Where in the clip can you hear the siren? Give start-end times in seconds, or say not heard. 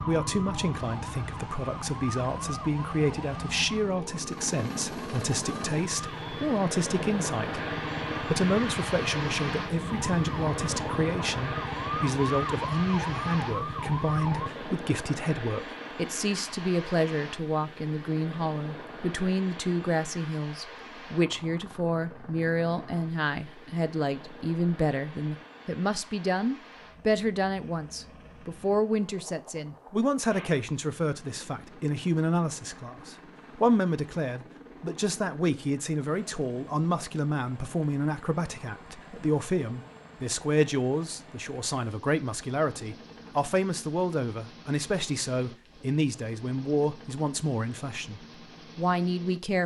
0.0-14.5.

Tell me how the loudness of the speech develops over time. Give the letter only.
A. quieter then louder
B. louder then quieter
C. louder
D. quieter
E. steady
E.